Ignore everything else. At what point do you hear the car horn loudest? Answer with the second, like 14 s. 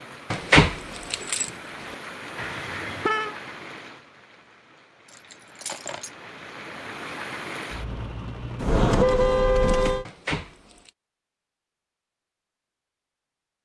9 s.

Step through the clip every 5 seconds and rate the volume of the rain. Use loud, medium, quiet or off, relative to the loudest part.
loud, loud, off.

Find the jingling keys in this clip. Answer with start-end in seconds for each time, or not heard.
0.3-1.9, 5.0-6.1, 10.1-10.9.